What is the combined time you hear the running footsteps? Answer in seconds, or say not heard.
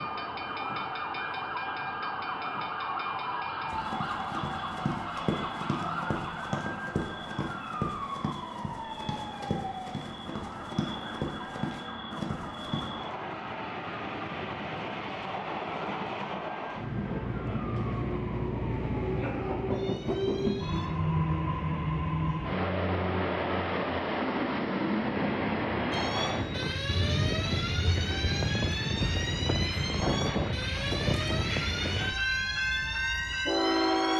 9 s.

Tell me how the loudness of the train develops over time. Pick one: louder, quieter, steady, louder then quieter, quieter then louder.
louder.